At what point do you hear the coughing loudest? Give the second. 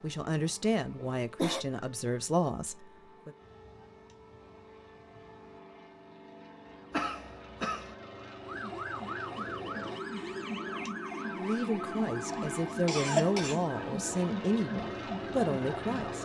13 s.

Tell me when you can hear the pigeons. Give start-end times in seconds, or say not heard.
not heard.